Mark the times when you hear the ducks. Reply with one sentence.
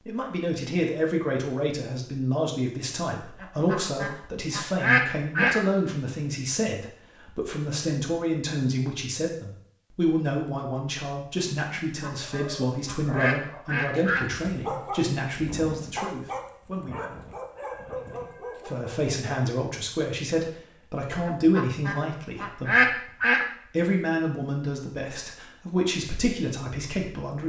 The ducks can be heard from 3.4 to 5.6 s, from 12.0 to 14.2 s and from 21.2 to 23.4 s.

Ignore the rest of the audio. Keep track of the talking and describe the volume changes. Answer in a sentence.
The loudness of the talking stays about the same.